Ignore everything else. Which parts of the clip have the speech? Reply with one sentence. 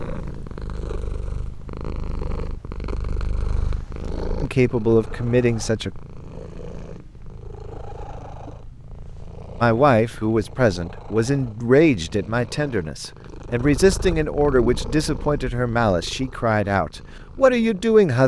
You can hear the speech from 4.4 to 5.9 s and from 9.6 to 18.2 s.